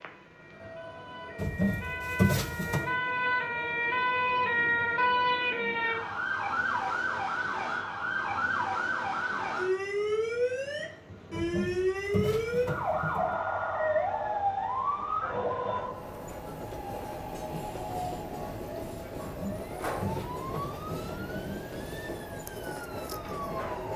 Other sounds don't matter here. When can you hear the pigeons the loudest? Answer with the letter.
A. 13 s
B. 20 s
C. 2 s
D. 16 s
C.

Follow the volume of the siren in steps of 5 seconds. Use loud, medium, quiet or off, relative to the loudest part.
loud, loud, loud, medium, quiet.